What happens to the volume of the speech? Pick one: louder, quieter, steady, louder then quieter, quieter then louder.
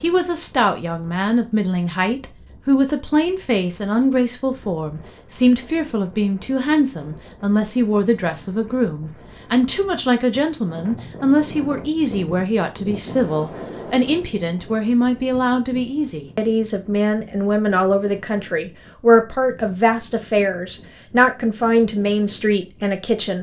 steady.